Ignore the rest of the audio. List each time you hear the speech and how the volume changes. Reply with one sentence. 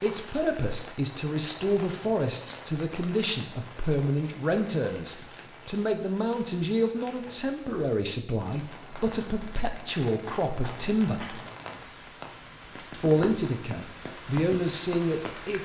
The speech can be heard from 0.0 to 11.4 s, at a steady volume; and briefly from 12.9 to 15.6 s.